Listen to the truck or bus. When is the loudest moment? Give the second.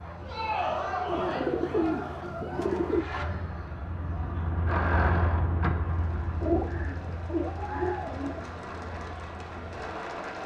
5 s.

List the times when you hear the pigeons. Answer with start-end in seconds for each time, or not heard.
1.1-3.0, 6.4-8.4.